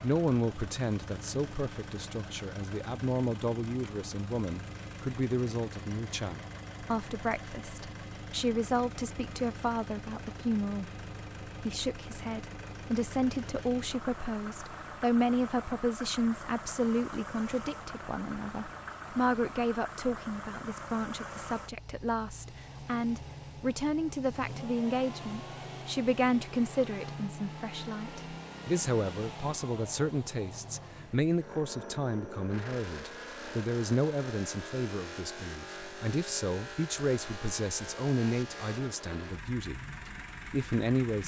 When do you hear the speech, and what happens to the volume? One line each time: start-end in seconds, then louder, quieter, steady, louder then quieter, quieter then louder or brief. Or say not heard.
0.0-39.8 steady
40.5-41.2 brief.